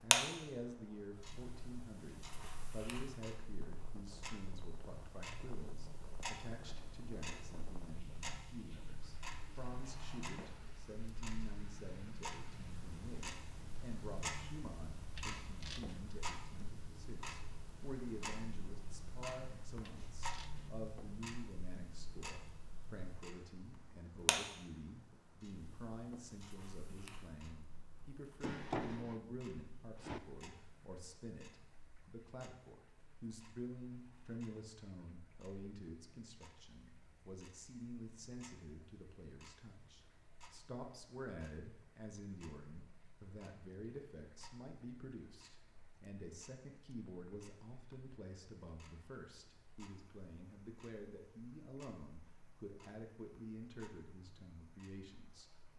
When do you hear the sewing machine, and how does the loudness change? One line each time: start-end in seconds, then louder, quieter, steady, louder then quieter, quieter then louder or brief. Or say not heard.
not heard.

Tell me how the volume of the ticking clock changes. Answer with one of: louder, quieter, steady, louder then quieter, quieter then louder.
quieter.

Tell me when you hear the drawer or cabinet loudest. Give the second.
29 s.